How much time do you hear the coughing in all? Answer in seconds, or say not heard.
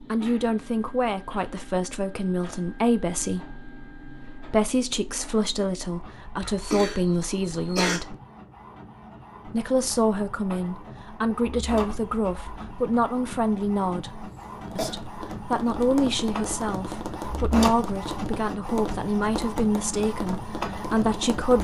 2 s.